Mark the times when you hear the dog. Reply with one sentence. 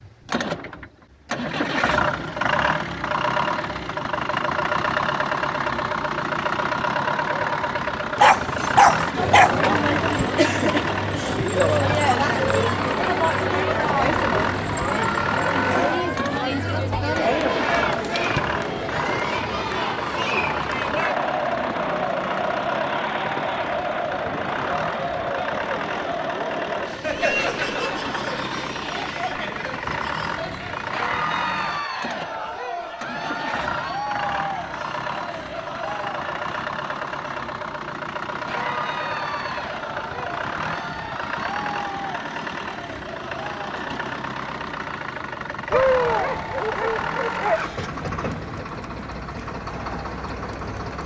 The dog can be heard from 8.2 to 9.6 s and from 45.7 to 47.8 s.